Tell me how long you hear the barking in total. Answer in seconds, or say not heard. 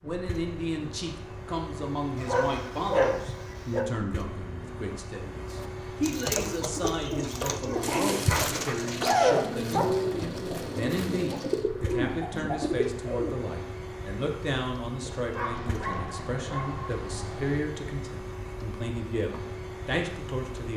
6 s.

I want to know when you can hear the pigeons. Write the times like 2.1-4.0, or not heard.
5.5-13.3.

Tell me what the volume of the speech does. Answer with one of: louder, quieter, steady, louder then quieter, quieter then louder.
steady.